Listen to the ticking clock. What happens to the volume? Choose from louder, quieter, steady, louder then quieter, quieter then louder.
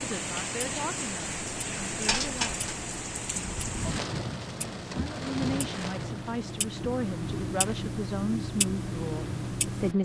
louder.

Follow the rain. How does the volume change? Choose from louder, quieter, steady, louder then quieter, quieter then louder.
quieter.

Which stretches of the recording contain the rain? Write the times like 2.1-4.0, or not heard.
0.0-9.9.